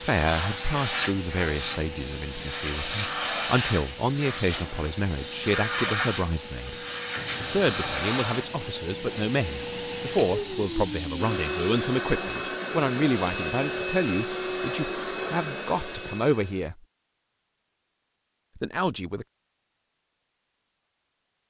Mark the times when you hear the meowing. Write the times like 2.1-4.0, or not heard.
not heard.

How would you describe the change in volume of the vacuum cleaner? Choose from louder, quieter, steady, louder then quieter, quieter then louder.
steady.